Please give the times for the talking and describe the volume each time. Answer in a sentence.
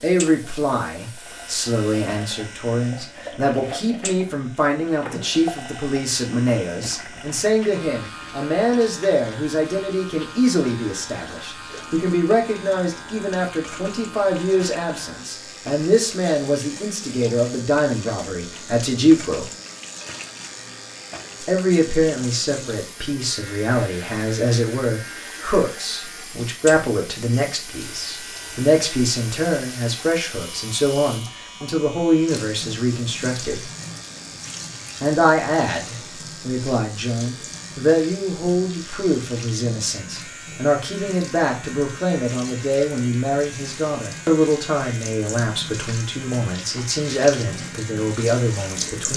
The talking can be heard from 0.0 to 19.5 s, at a steady volume; from 21.4 to 33.7 s, at a steady volume; and from 35.0 to 49.1 s, at a steady volume.